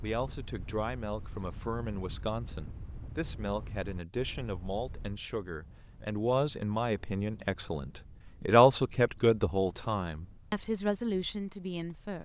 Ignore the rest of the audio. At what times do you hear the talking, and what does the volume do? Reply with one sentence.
You can hear the talking from 0.0 to 12.2 s, getting louder then quieter.